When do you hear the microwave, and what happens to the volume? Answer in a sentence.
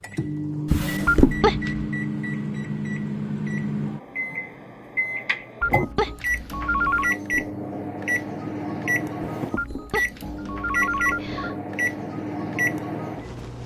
You can hear the microwave from 0.0 to 13.6 s, at a steady volume.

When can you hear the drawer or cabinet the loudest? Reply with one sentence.
The volume of the drawer or cabinet peaks at 1 second.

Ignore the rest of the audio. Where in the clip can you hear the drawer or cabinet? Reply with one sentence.
The drawer or cabinet can be heard from 0.7 to 1.4 s, from 6.8 to 7.5 s and from 9.2 to 9.9 s.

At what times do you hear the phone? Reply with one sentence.
You can hear the phone from 1.1 to 1.9 s, from 5.6 to 7.2 s and from 9.6 to 11.6 s.